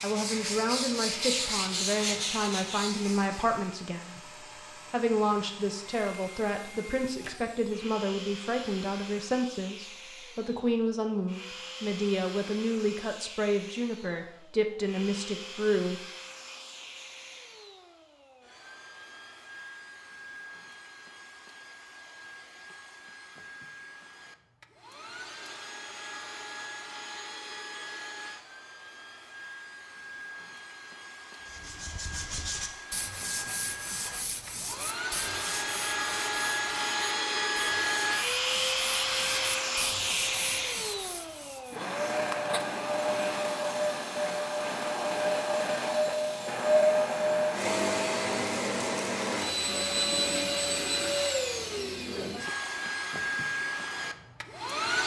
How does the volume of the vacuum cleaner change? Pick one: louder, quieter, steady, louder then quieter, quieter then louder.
louder.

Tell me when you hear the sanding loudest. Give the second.
1 s.